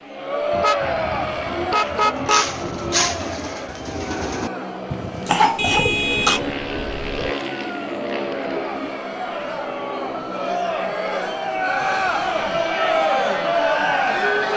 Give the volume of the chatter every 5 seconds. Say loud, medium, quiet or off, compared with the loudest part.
medium, medium, loud.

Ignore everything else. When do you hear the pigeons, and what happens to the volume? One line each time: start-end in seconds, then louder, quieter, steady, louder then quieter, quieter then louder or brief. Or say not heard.
1.8-8.9 quieter.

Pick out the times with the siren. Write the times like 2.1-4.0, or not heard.
not heard.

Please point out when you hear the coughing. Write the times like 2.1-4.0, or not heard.
5.2-6.4.